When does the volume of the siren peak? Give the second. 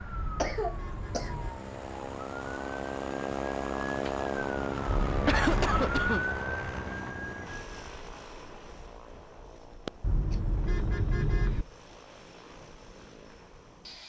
6 s.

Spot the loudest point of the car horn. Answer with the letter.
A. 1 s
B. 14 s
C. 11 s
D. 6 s
C.